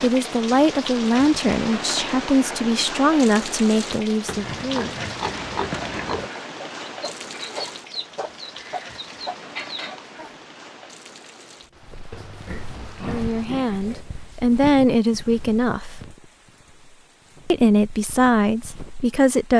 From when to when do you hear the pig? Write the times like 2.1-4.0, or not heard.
4.2-6.3, 12.1-14.1.